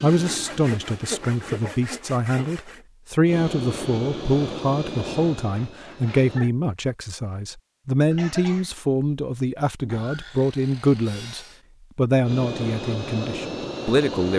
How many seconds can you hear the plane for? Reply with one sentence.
You can hear the plane for 7 seconds altogether.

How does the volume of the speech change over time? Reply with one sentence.
The loudness of the speech stays about the same.